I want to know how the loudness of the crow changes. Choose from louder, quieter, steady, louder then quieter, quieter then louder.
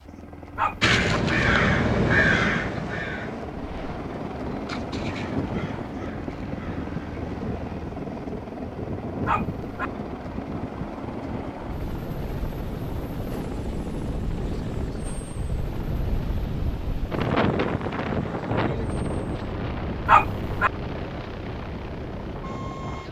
quieter.